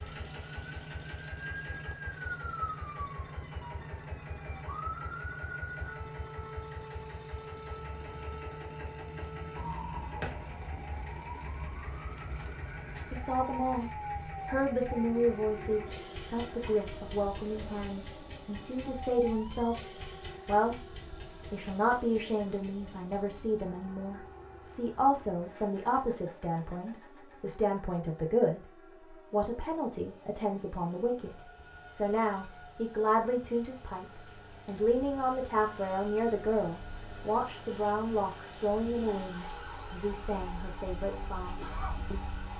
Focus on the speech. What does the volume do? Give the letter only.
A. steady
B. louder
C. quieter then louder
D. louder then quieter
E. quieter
A.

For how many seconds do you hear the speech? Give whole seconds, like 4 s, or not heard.
28 s.